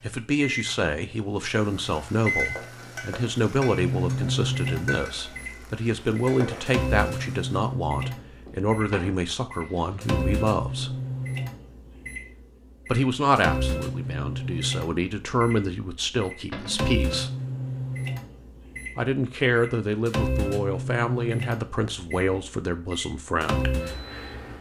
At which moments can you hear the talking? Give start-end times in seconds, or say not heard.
0.0-10.9, 12.8-17.3, 18.9-23.8.